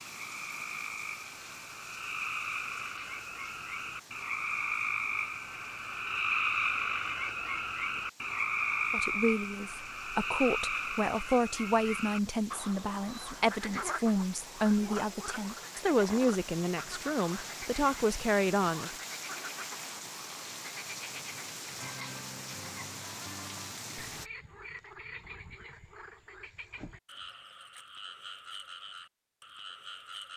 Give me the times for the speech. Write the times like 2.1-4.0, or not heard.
8.9-18.9.